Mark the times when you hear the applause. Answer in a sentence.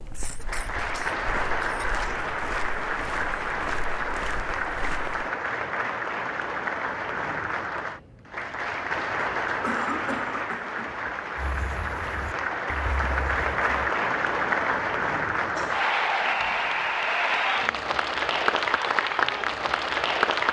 The applause can be heard from 0.0 to 20.4 s.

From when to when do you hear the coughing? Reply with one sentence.
The coughing can be heard from 0.1 to 2.2 s, from 9.6 to 10.9 s and from 15.3 to 15.8 s.